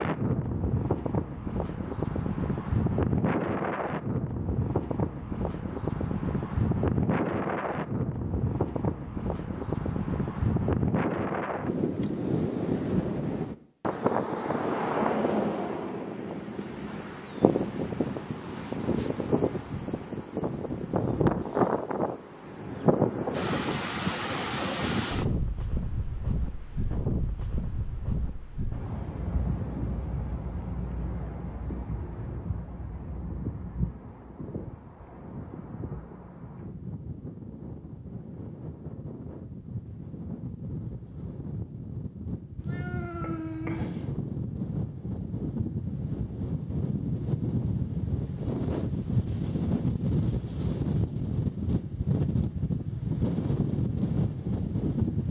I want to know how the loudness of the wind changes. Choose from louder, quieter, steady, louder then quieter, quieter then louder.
quieter then louder.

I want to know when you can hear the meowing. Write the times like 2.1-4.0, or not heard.
42.6-44.1.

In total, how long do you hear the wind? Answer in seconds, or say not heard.
55 s.